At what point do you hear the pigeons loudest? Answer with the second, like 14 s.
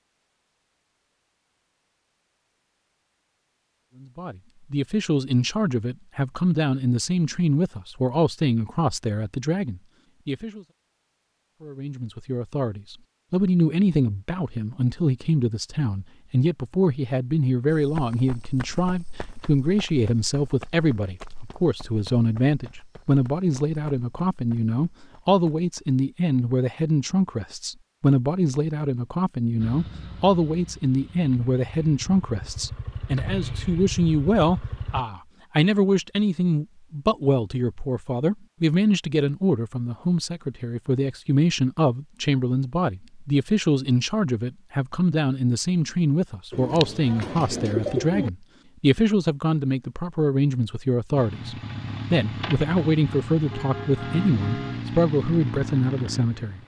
48 s.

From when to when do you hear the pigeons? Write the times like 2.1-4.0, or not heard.
46.5-48.3.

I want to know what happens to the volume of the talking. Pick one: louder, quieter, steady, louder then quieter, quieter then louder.
steady.